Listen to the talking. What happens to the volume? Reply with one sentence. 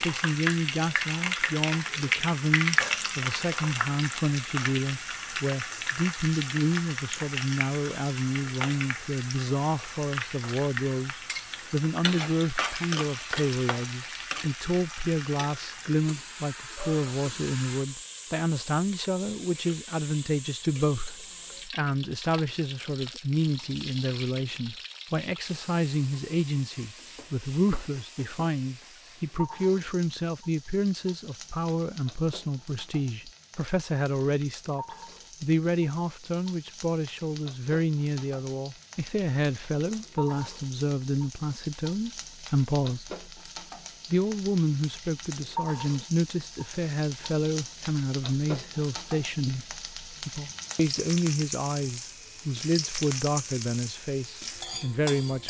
The loudness of the talking stays about the same.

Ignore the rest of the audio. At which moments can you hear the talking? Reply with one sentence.
You can hear the talking from 0.0 to 43.1 s and from 44.1 to 55.4 s.